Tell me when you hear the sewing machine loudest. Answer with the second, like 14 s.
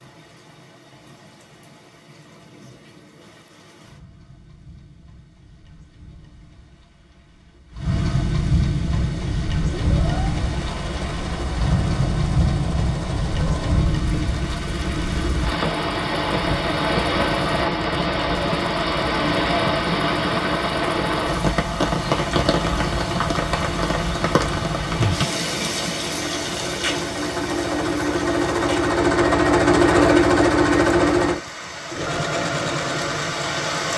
30 s.